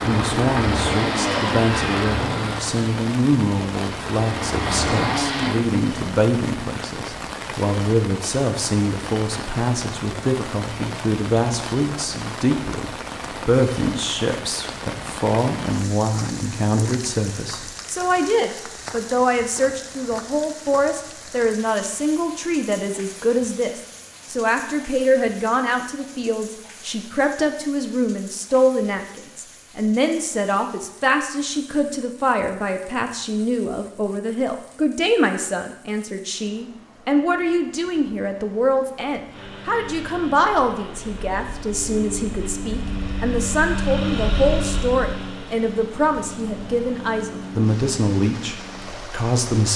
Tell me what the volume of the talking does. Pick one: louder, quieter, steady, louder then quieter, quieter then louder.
steady.